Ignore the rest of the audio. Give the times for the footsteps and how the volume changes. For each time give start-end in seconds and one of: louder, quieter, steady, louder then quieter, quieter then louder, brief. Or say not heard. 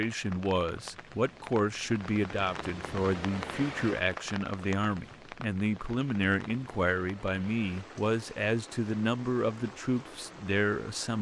not heard.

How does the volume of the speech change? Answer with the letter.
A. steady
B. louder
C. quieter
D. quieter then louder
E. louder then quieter
A.